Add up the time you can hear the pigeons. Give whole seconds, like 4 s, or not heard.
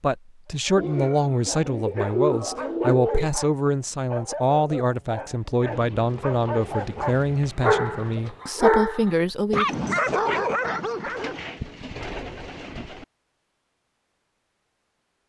7 s.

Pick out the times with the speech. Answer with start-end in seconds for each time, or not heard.
0.0-9.8.